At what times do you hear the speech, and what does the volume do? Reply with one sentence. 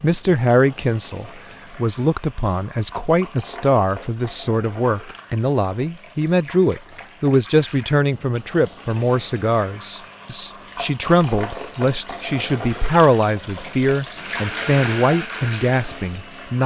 The speech can be heard from 0.0 to 16.6 s, at a steady volume.